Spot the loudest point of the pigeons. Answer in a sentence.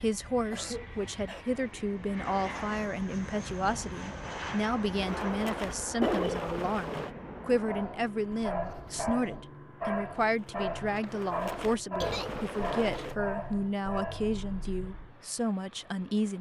The loudest moment of the pigeons is at 6 seconds.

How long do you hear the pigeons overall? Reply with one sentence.
You can hear the pigeons for 5 seconds altogether.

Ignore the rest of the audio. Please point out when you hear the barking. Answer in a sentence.
The barking can be heard from 7.6 to 15.1 s.